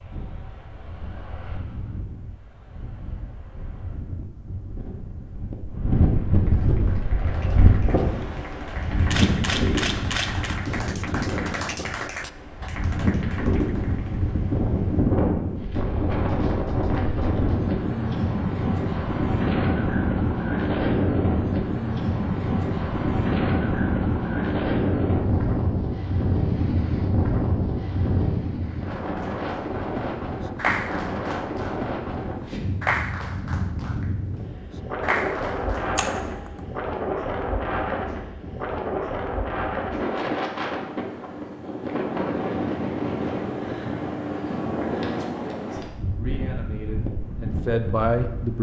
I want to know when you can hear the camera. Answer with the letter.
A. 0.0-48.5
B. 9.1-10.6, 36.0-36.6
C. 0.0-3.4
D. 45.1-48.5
B.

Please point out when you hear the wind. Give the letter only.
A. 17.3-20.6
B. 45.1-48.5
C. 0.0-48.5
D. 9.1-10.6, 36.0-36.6
C.